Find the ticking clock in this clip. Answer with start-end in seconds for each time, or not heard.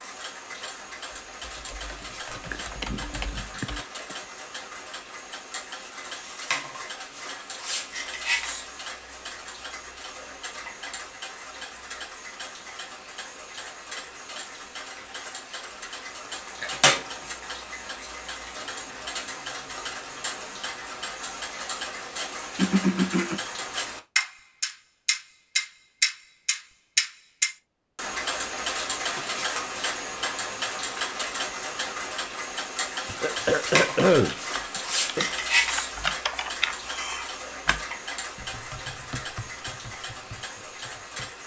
0.0-41.4.